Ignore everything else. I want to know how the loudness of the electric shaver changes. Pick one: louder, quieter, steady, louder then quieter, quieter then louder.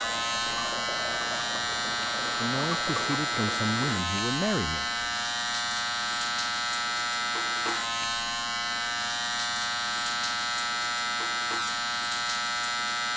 steady.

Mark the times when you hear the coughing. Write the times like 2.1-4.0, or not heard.
not heard.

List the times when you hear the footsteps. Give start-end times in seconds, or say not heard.
not heard.